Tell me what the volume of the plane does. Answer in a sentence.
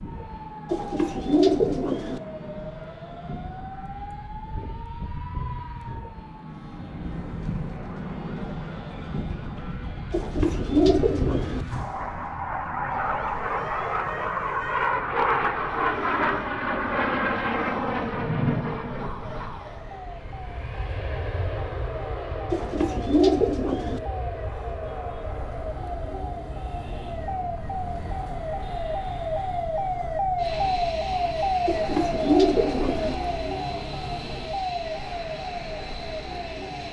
The volume of the plane goes up, then down.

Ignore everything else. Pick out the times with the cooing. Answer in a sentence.
You can hear the cooing from 0.7 to 2.2 s, from 10.1 to 11.7 s, from 22.5 to 24.0 s and from 31.6 to 33.1 s.